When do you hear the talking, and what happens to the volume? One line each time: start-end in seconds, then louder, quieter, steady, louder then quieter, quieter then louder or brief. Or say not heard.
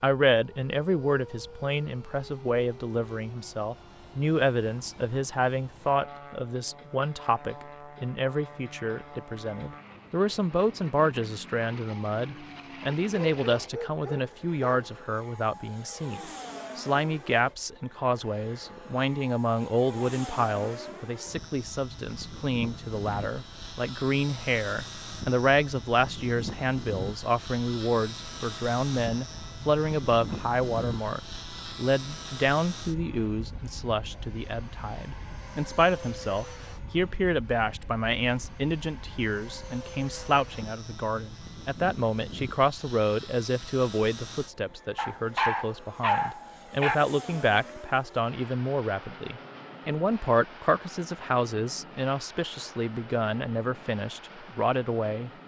0.0-55.3 steady.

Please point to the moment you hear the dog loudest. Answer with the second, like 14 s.
46 s.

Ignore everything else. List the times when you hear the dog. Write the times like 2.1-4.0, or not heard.
13.0-14.9, 45.0-47.0.